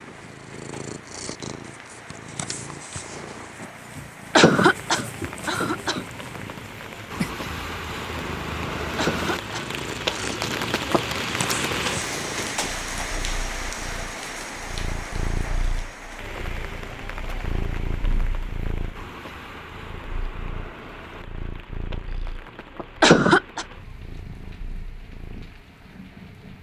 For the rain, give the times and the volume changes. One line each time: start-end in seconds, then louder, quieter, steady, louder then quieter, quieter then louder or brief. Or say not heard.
0.0-26.5 louder then quieter.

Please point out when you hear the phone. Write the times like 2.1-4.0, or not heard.
not heard.